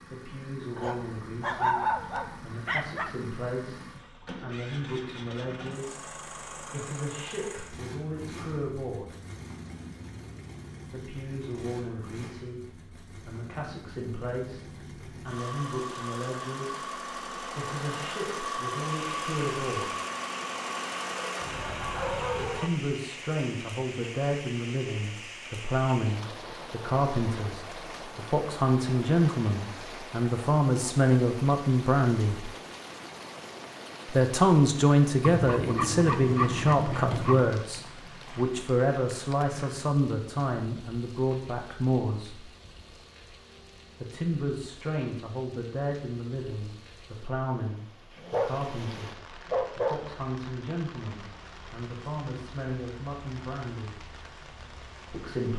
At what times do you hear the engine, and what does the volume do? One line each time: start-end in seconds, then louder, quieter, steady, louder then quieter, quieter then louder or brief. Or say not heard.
0.0-22.6 louder.